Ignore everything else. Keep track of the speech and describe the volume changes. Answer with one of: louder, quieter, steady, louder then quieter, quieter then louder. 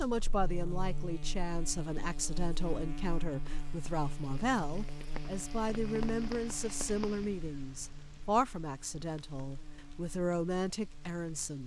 steady.